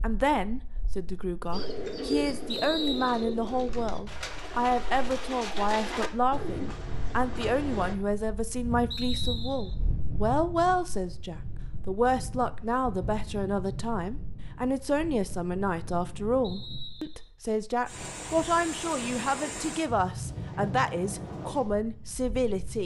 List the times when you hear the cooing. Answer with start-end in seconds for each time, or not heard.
1.5-8.0.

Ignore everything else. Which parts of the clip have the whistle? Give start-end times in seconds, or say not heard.
2.5-3.4, 8.9-9.8, 16.4-17.3.